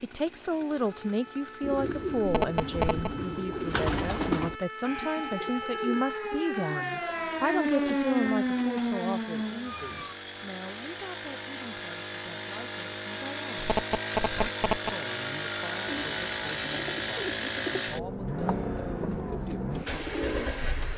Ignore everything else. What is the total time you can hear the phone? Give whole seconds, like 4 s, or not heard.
2 s.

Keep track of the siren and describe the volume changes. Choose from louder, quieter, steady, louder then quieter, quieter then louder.
louder.